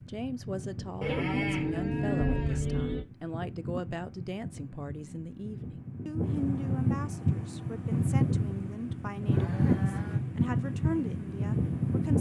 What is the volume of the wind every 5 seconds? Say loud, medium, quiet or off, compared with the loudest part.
quiet, loud, loud.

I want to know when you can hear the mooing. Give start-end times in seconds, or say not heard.
1.0-3.0, 9.3-10.2.